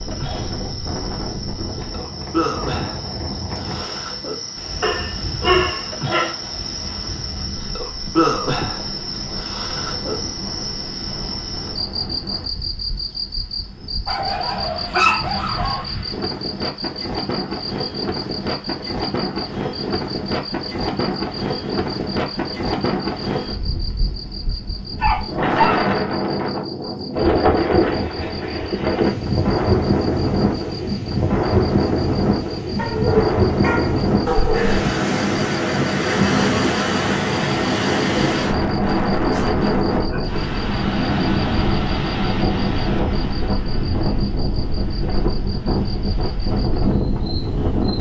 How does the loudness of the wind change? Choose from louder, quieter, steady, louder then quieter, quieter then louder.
louder.